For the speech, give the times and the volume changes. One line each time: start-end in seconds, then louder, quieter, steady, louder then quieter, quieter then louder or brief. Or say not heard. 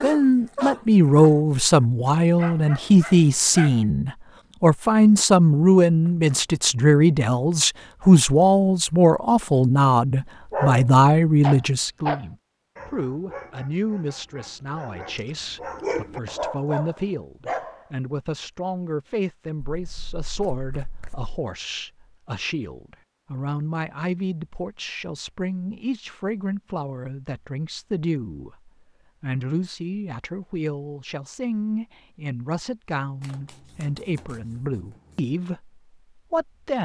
0.0-36.8 quieter.